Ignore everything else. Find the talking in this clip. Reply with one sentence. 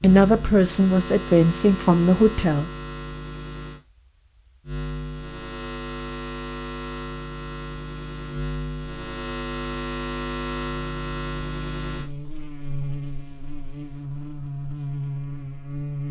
The talking can be heard from 0.0 to 2.7 s.